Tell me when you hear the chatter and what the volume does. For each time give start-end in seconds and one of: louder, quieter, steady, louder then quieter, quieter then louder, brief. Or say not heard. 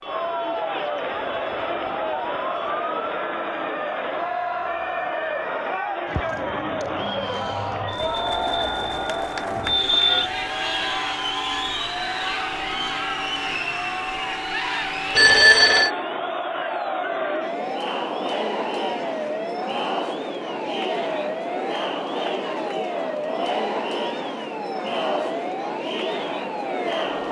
0.0-27.2 steady.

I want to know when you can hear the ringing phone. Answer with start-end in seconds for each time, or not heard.
7.9-10.3, 15.2-15.9.